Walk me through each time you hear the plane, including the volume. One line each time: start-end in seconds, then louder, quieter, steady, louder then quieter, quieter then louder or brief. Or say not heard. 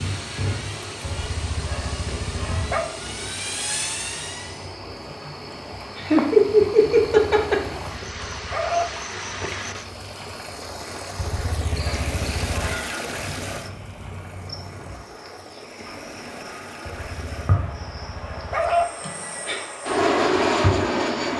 0.0-4.8 louder
18.9-21.3 brief.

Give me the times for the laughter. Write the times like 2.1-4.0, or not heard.
5.5-7.8, 19.0-19.6.